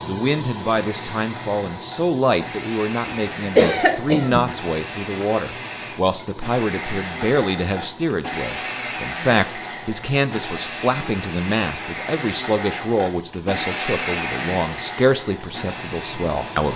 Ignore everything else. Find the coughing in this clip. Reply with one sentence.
You can hear the coughing from 3.0 to 4.5 s.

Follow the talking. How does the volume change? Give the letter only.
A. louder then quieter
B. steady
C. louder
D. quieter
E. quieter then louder
B.